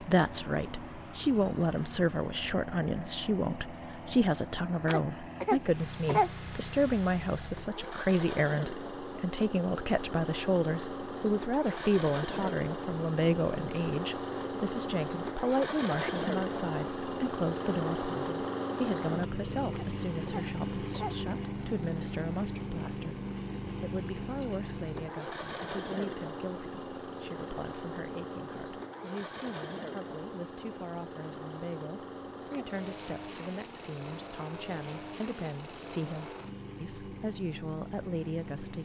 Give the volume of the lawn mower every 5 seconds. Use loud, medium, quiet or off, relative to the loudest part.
medium, medium, loud, loud, loud, medium, medium, medium.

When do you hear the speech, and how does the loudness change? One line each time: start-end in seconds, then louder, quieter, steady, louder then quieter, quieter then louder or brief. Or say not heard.
0.0-38.8 quieter.